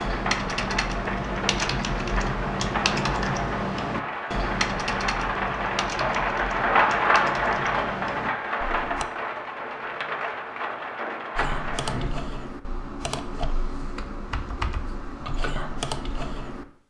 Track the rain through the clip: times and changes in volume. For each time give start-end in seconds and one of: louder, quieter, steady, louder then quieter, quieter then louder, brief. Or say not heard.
0.0-12.1 louder then quieter.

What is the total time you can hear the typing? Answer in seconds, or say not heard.
14 s.